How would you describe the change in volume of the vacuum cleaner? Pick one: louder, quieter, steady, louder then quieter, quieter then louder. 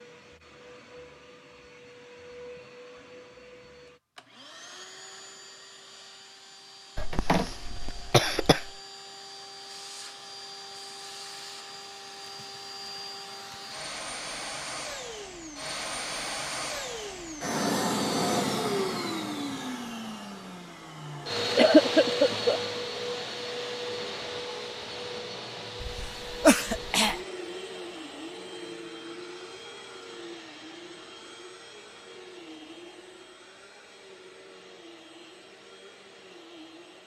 louder then quieter.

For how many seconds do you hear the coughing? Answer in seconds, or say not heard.
4 s.